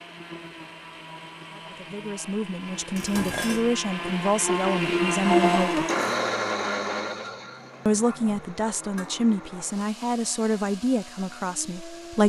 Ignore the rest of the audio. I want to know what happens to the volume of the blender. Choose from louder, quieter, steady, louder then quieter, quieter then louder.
louder then quieter.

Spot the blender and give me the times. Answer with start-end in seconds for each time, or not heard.
0.0-12.2.